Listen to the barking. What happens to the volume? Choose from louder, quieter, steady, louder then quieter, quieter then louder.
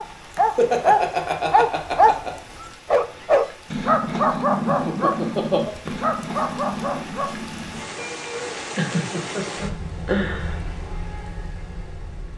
quieter.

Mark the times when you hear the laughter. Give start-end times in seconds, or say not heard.
0.3-2.4, 4.7-5.8, 8.8-10.6.